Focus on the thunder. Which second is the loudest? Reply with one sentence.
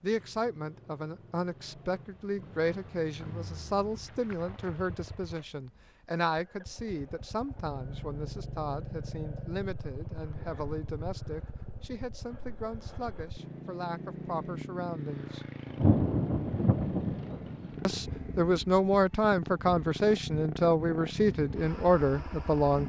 The loudest moment of the thunder is at 16 seconds.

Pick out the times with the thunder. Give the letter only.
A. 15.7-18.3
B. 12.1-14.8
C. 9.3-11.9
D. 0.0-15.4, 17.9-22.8
A.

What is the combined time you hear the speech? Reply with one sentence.
The speech can be heard for 20 seconds in total.